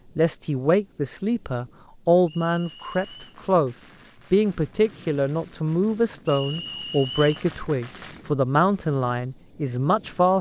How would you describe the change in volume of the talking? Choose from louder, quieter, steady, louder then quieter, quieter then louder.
steady.